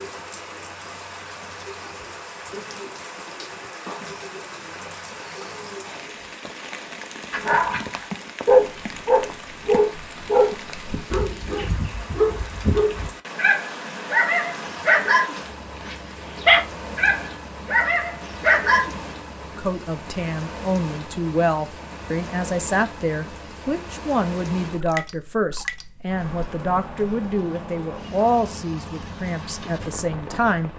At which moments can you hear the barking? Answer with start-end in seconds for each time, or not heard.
7.3-19.0.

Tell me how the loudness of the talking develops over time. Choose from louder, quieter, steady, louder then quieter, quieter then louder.
steady.